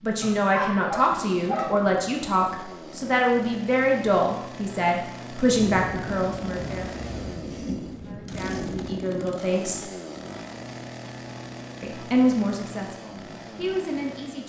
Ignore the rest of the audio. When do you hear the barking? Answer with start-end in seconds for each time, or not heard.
0.2-1.7.